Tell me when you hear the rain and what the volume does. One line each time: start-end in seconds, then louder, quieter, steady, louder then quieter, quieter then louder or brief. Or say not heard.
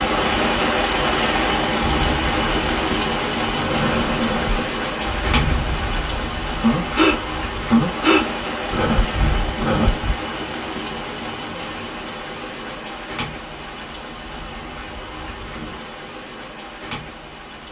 0.0-17.6 quieter.